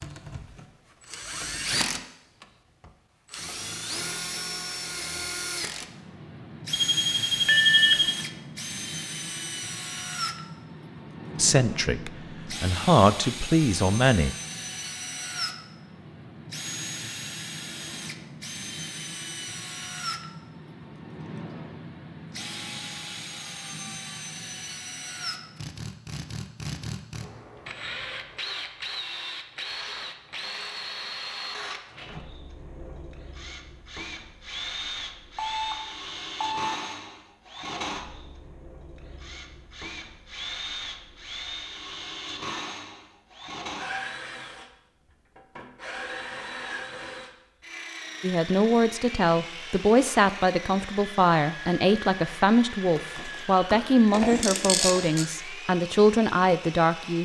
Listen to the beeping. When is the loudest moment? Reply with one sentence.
The loudest moment of the beeping is at 8 seconds.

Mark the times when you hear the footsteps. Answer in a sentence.
You can't hear the footsteps here.